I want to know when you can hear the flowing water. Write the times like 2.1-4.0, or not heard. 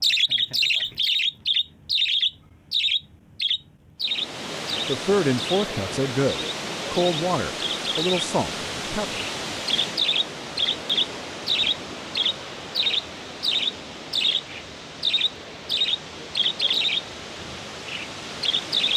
4.0-18.9.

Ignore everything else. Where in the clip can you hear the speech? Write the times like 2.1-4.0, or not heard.
4.8-9.2.